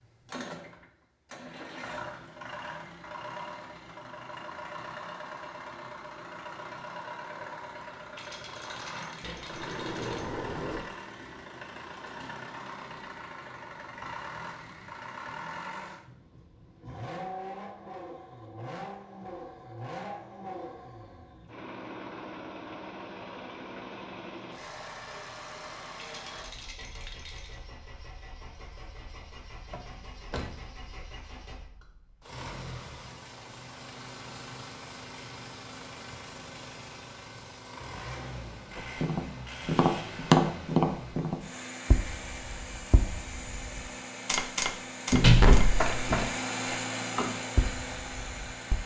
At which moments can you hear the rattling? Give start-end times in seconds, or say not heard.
8.1-10.2, 25.9-27.6.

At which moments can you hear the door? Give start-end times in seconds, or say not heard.
9.2-10.8, 29.7-30.5, 45.1-46.3.